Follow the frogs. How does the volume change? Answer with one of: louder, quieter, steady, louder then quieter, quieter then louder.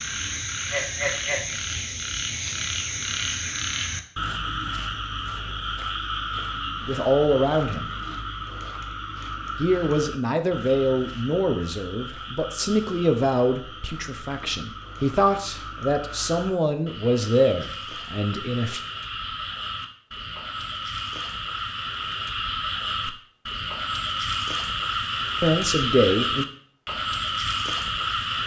quieter then louder.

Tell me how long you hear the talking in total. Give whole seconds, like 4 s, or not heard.
11 s.